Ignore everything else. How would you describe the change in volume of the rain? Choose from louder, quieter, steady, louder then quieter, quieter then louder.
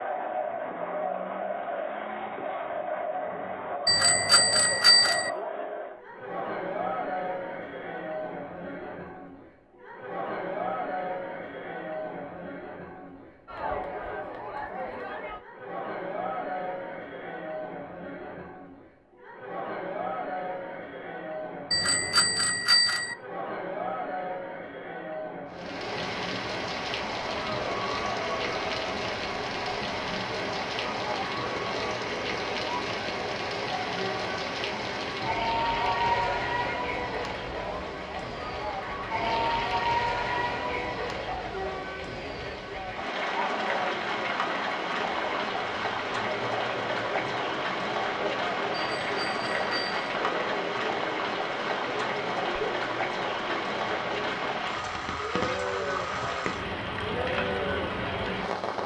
steady.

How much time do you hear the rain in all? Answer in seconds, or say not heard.
33 s.